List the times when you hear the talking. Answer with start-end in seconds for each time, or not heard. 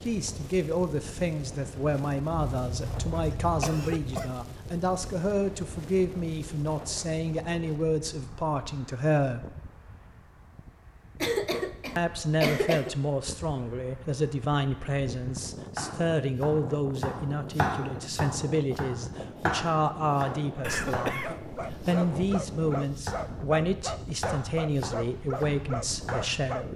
0.0-9.6, 11.9-26.7.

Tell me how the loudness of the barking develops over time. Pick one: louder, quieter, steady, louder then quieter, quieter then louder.
steady.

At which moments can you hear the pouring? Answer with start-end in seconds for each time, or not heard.
not heard.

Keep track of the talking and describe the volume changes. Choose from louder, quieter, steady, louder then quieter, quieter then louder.
steady.